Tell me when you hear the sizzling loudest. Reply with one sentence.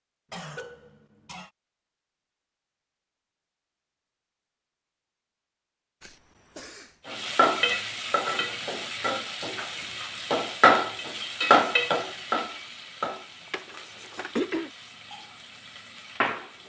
The loudest moment of the sizzling is at 11 seconds.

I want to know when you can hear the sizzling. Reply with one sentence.
You can hear the sizzling from 7.0 to 16.6 s.